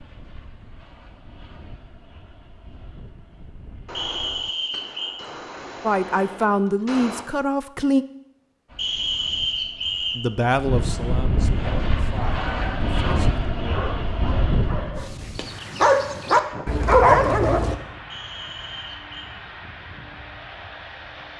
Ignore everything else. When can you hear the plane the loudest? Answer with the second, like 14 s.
13 s.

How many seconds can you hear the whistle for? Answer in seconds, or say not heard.
4 s.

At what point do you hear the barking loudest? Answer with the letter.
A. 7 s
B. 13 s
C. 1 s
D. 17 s
D.